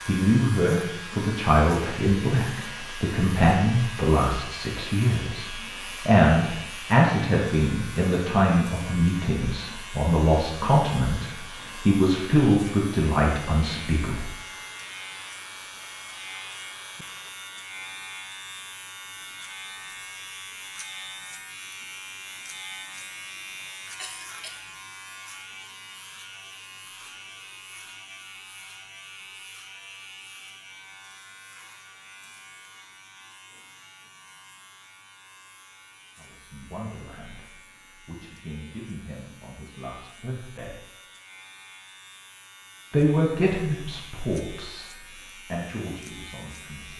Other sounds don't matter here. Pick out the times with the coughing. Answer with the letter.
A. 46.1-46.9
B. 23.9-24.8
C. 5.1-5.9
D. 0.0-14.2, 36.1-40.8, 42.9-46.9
B.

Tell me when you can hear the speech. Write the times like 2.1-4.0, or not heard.
0.0-14.2, 36.1-40.8, 42.9-46.9.